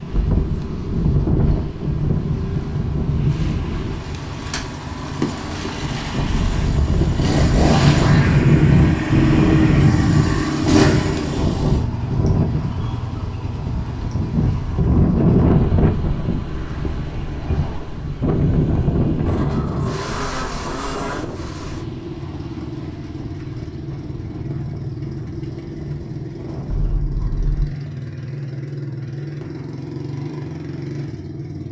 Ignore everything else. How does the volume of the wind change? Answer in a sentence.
The volume of the wind goes up, then down.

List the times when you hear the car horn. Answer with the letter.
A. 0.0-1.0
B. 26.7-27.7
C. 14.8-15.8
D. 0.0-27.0
B.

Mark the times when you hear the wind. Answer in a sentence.
You can hear the wind from 0.0 to 27.0 s.